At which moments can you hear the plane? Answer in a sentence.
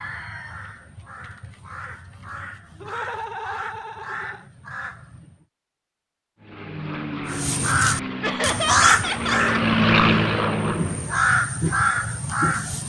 You can hear the plane from 6.4 to 11.2 s.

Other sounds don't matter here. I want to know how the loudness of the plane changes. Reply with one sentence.
The volume of the plane goes up.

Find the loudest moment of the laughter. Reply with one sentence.
The volume of the laughter peaks at 9 seconds.